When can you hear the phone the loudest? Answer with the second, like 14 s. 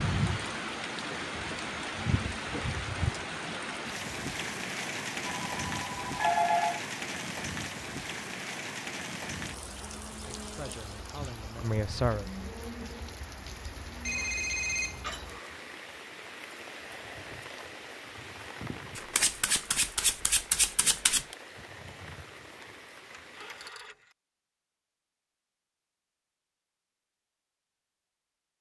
6 s.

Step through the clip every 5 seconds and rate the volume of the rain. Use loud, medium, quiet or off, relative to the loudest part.
loud, loud, medium, medium, quiet, off.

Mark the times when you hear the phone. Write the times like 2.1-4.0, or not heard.
5.2-6.8, 14.1-15.2, 23.1-24.1.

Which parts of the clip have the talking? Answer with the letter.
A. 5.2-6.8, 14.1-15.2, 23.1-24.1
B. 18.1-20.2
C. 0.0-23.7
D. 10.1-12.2
D.